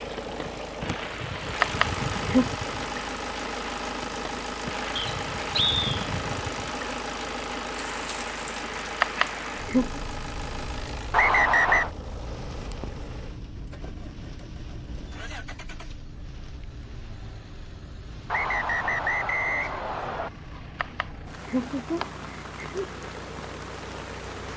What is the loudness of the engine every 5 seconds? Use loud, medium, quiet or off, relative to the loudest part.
loud, loud, medium, quiet, medium.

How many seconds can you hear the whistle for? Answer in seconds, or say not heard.
4 s.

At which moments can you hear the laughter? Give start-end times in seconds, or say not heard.
1.4-2.5, 9.0-10.0, 20.6-22.9.